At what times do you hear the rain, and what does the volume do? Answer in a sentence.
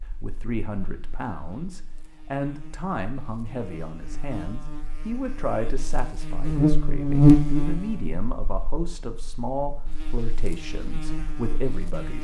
The rain can't be heard in this clip.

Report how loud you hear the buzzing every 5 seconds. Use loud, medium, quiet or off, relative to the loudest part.
quiet, loud, quiet.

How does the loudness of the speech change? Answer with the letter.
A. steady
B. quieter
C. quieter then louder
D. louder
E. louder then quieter
A.